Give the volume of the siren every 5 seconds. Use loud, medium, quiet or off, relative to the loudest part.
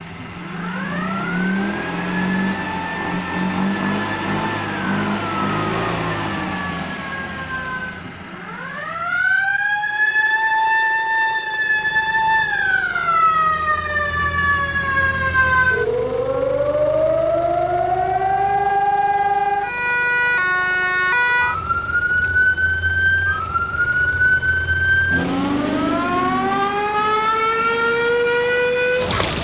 quiet, medium, loud, loud, loud, loud.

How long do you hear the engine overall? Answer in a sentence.
You can hear the engine for 29 seconds altogether.